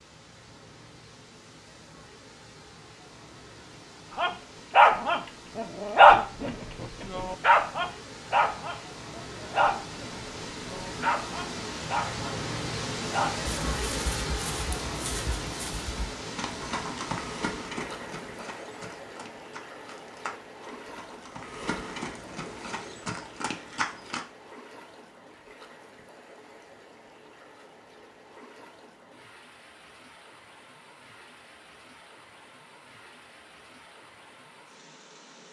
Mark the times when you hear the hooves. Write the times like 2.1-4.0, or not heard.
13.7-24.2.